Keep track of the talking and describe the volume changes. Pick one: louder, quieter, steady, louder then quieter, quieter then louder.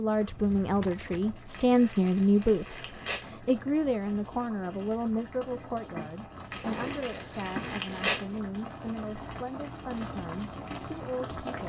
quieter.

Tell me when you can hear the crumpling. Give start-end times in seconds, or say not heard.
1.5-3.3, 6.5-8.2.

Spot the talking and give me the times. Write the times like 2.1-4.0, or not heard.
0.0-11.6.